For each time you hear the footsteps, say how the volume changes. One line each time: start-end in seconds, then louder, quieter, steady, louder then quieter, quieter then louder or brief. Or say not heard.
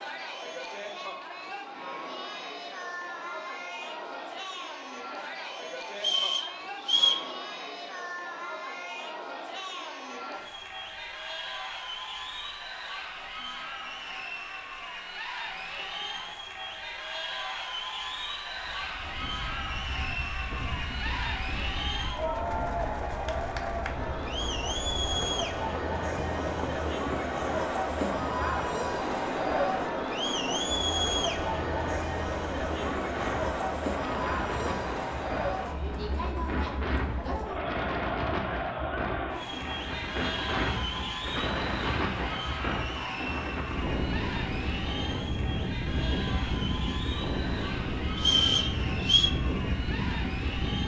not heard.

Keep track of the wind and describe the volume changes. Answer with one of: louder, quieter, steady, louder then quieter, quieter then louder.
louder.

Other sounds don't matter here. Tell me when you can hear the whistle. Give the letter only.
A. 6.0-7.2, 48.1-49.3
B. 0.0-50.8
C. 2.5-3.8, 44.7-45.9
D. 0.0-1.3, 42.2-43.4
A.